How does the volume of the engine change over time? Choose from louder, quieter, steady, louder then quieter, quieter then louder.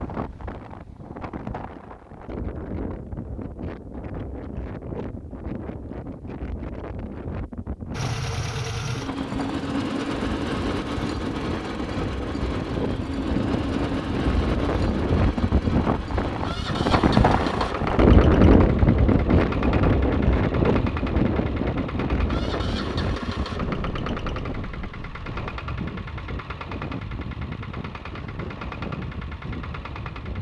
quieter.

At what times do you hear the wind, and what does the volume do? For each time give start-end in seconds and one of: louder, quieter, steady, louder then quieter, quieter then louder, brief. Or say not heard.
0.0-30.3 louder then quieter.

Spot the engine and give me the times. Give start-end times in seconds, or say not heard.
7.9-30.3.